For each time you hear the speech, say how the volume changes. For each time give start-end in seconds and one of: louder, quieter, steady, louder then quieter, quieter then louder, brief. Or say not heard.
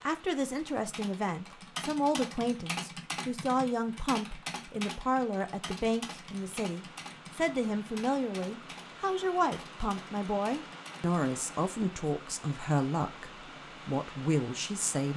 0.0-15.1 steady.